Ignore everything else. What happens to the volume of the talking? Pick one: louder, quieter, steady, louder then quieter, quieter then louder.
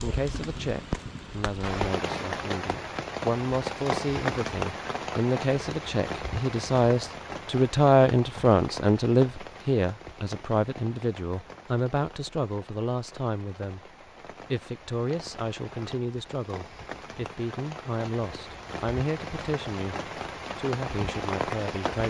louder then quieter.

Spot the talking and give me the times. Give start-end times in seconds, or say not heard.
0.0-22.0.